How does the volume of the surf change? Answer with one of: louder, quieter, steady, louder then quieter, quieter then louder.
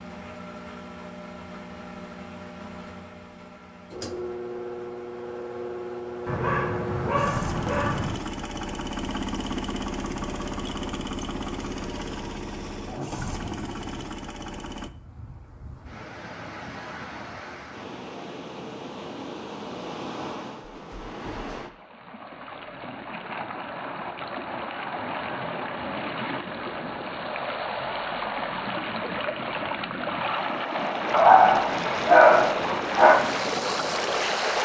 louder.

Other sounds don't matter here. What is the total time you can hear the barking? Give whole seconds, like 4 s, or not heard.
4 s.